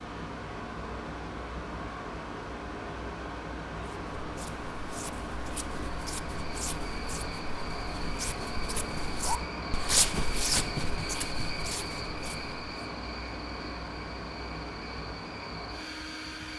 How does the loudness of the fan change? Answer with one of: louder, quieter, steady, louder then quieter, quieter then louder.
steady.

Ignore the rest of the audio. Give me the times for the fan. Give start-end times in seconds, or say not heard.
0.0-16.5.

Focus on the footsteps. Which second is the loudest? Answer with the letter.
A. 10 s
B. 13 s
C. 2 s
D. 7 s
A.